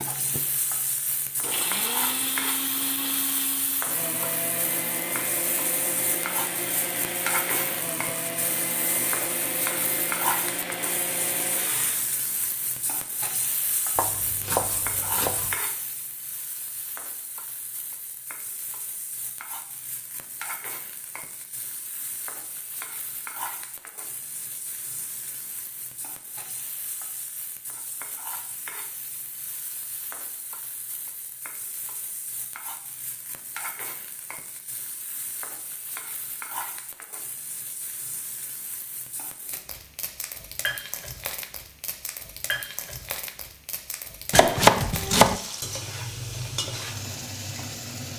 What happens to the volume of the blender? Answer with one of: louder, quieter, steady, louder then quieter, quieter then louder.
steady.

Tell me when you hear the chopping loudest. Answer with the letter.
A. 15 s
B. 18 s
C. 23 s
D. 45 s
D.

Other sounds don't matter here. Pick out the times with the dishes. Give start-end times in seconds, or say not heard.
not heard.